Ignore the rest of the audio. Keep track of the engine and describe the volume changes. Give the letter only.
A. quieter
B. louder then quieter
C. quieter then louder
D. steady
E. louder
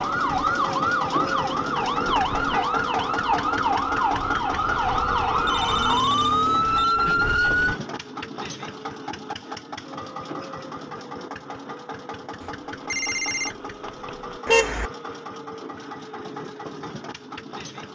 A.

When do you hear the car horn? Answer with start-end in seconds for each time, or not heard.
2.0-2.6, 14.4-14.9.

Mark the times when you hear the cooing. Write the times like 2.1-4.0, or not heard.
not heard.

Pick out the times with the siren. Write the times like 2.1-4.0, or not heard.
0.0-7.8.